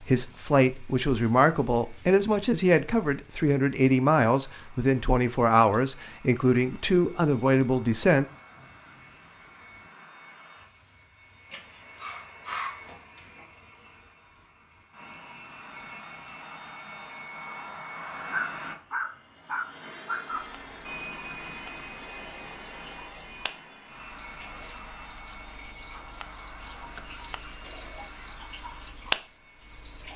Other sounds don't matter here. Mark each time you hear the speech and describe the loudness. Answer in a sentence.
The speech can be heard from 0.0 to 8.2 s, at a steady volume.